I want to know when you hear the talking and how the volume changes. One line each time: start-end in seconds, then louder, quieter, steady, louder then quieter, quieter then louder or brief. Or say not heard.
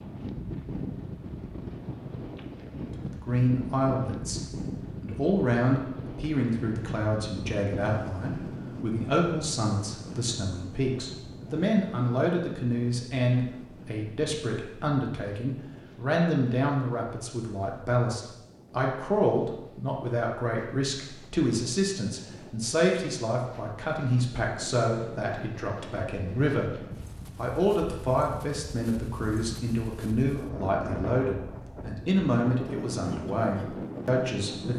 3.0-34.7 steady.